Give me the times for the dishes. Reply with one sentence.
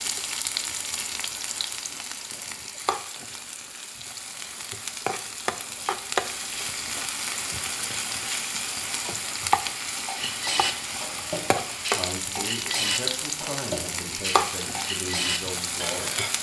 You can hear the dishes from 10.0 to 16.3 s.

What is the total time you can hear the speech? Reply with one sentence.
The speech can be heard for 4 seconds in total.